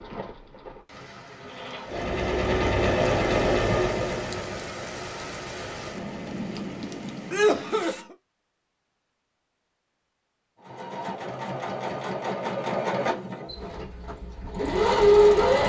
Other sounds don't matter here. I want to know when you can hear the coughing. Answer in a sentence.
You can hear the coughing from 7.3 to 8.2 s.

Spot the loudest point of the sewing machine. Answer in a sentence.
The volume of the sewing machine peaks at 15 seconds.